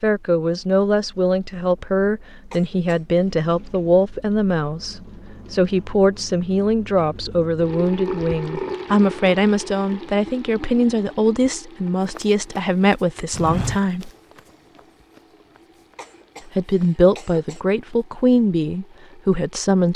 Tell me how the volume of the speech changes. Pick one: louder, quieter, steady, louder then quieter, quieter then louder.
steady.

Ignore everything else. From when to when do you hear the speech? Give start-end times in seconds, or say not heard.
0.0-14.1, 16.6-19.9.